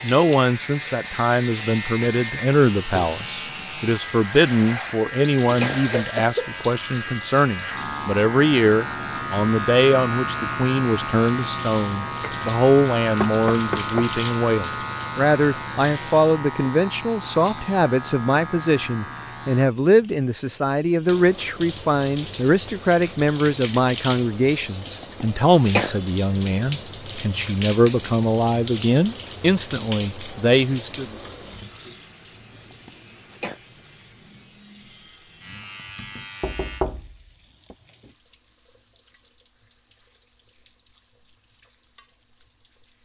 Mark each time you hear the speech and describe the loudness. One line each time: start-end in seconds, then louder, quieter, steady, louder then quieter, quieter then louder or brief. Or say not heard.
0.0-31.1 steady.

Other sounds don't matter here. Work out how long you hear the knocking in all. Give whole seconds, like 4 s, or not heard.
2 s.